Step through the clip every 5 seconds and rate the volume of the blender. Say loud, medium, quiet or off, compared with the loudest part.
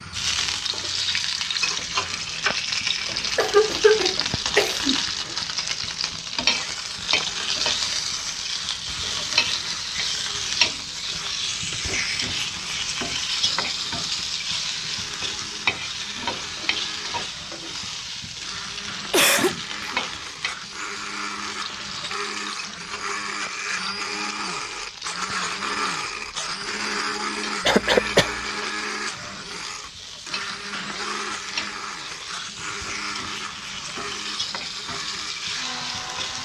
quiet, quiet, quiet, medium, loud, loud, medium, medium.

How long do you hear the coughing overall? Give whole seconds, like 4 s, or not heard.
3 s.